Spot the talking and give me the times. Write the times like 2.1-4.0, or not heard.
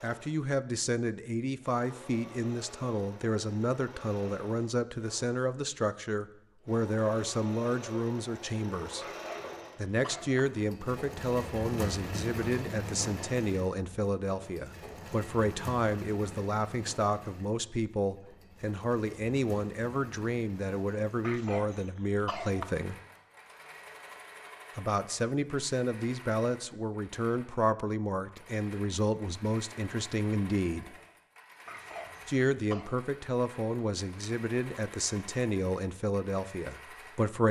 0.0-9.1, 9.8-23.0, 24.8-30.9, 32.2-37.4.